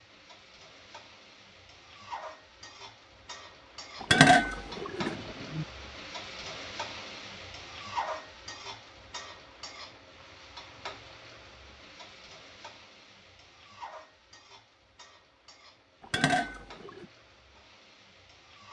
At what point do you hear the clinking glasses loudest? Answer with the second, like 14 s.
4 s.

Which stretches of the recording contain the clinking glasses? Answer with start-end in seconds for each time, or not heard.
4.0-5.7, 16.1-17.1.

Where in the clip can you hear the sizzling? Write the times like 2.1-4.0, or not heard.
0.0-18.6.